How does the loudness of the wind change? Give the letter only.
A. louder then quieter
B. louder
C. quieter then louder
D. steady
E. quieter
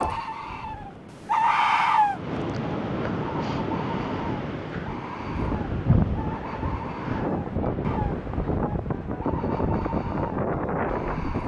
B.